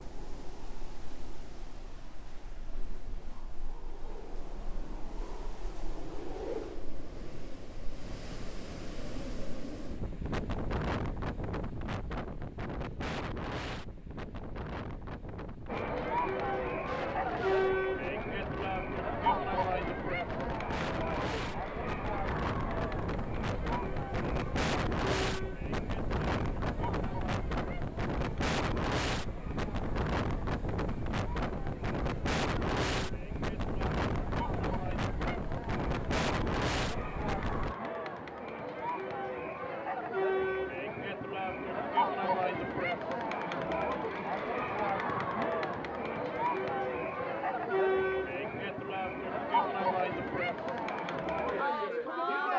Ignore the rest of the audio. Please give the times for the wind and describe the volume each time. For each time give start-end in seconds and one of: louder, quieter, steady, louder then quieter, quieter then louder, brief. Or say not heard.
0.0-37.8 louder.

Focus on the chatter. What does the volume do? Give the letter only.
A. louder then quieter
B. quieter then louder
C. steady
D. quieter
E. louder
B.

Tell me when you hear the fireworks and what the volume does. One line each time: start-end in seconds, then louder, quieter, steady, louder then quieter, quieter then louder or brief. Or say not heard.
not heard.